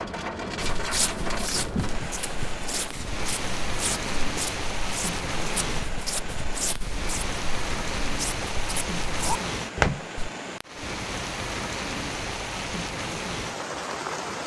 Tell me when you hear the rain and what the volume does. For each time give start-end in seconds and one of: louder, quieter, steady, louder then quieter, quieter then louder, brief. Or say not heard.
0.0-14.4 steady.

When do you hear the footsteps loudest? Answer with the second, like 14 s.
10 s.